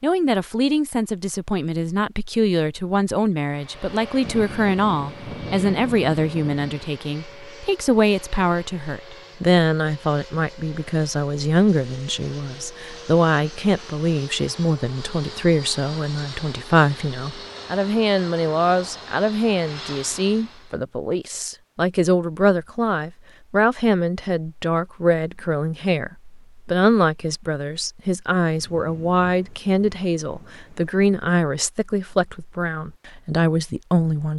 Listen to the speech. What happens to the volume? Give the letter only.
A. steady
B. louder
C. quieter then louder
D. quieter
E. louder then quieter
A.